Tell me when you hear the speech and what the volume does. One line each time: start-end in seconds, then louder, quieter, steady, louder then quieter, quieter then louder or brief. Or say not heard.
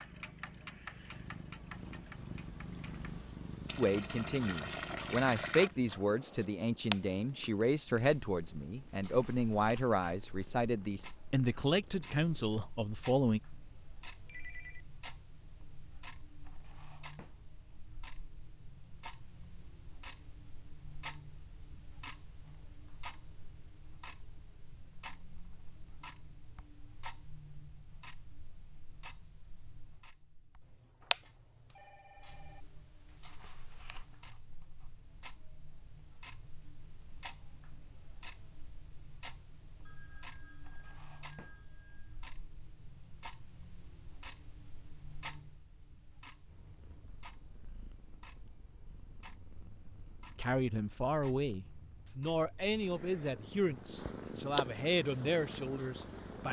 3.8-13.4 steady
50.4-56.4 steady.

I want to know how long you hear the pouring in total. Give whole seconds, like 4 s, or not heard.
2 s.